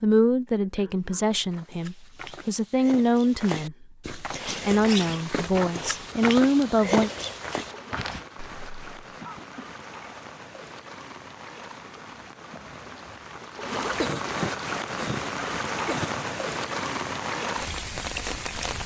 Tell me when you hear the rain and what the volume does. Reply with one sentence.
The rain can be heard from 4.4 to 18.8 s, getting louder.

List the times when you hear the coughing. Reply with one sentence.
The coughing can be heard from 0.5 to 1.3 s, from 9.2 to 9.8 s and from 13.9 to 16.2 s.